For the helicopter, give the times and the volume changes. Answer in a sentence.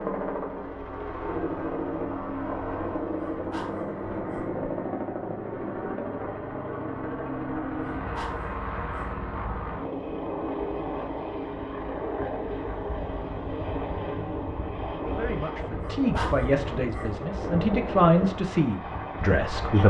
You can hear the helicopter from 0.0 to 19.8 s, at a steady volume.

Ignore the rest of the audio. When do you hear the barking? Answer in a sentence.
The barking can be heard from 3.3 to 4.5 s, from 8.0 to 9.2 s and from 15.8 to 17.1 s.